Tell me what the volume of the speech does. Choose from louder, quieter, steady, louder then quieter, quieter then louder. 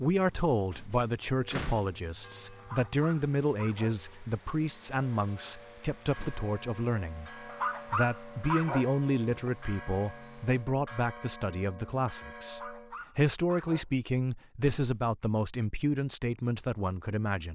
steady.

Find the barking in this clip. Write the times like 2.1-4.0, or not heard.
2.5-4.0, 7.5-9.5, 12.4-13.8.